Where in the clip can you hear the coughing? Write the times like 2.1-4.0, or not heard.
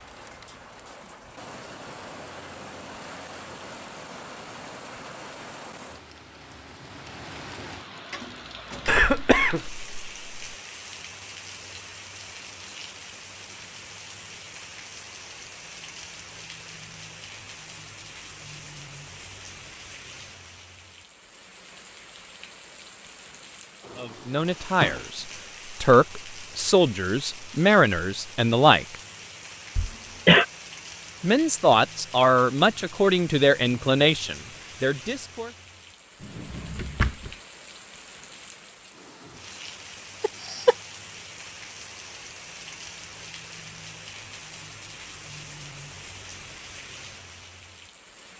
8.8-10.4, 29.8-30.4, 40.2-40.8.